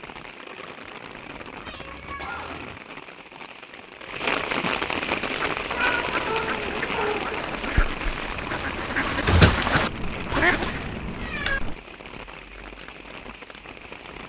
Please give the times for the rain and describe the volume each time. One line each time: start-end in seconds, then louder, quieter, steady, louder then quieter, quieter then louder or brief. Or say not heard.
0.0-14.2 louder then quieter.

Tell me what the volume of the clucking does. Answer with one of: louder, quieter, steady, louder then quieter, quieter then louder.
louder.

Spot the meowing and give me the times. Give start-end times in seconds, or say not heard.
1.6-2.8, 5.7-7.6, 9.8-11.8.